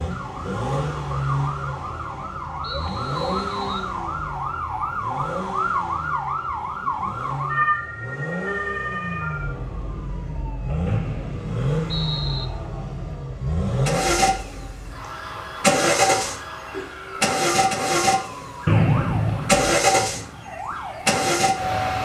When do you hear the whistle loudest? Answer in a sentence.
The loudest moment of the whistle is at 19 seconds.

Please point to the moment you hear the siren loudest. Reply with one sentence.
The volume of the siren peaks at 7 seconds.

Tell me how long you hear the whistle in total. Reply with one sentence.
The whistle can be heard for 4 seconds in total.